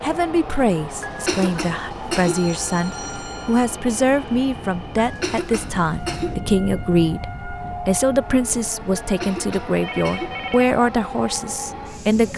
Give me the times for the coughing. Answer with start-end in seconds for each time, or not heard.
1.0-2.4, 5.0-6.3, 9.0-10.3.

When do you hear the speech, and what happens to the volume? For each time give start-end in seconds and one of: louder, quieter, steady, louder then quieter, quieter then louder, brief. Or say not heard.
0.0-12.3 steady.